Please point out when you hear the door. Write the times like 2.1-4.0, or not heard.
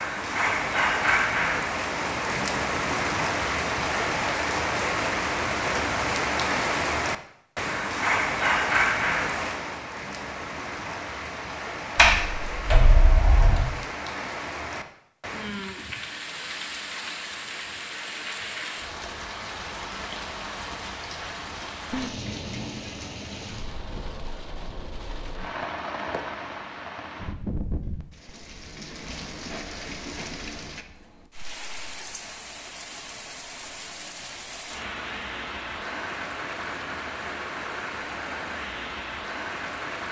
11.9-13.7.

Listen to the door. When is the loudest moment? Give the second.
12 s.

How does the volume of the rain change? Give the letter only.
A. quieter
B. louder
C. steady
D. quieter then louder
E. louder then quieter
A.